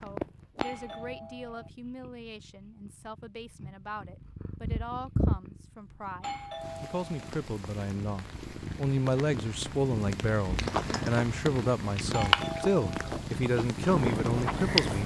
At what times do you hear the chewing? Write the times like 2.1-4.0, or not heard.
10.6-15.0.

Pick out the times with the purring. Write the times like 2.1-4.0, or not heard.
0.0-15.0.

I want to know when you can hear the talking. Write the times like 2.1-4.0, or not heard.
0.0-15.0.